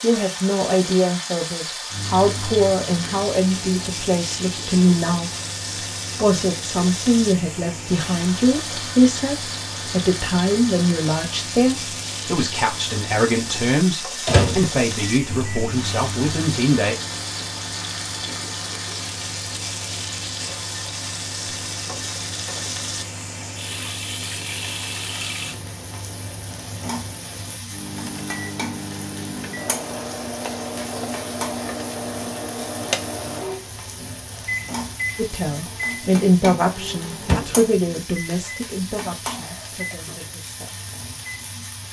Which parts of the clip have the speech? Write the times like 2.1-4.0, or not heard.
0.0-5.3, 6.2-16.9, 35.1-40.8.